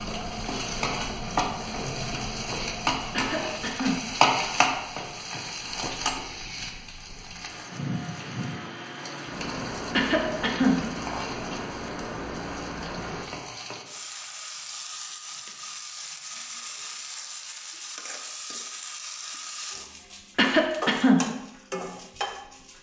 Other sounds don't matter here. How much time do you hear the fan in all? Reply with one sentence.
You can hear the fan for 13 seconds altogether.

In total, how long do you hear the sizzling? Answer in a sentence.
The sizzling can be heard for 23 seconds in total.